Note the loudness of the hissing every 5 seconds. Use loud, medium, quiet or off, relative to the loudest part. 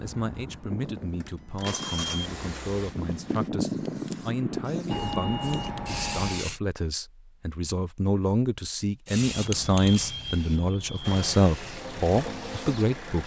loud, loud, medium.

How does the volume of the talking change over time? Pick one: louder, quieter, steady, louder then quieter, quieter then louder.
louder.